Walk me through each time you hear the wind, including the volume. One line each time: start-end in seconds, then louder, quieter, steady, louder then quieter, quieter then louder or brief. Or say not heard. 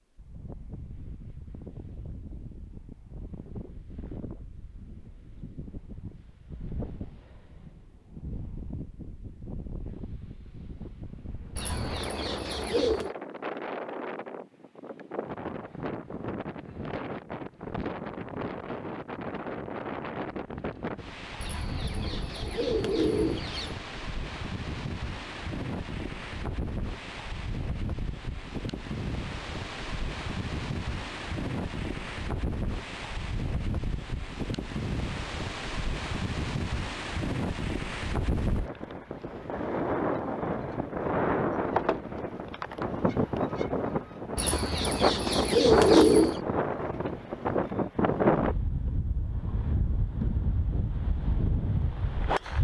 0.1-52.5 louder.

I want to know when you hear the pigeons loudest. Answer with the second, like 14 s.
46 s.